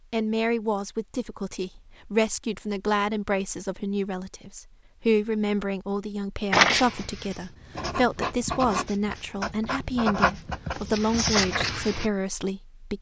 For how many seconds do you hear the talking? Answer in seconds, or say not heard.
13 s.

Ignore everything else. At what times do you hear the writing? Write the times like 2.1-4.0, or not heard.
6.5-12.1.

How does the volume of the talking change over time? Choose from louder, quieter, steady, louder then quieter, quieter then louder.
steady.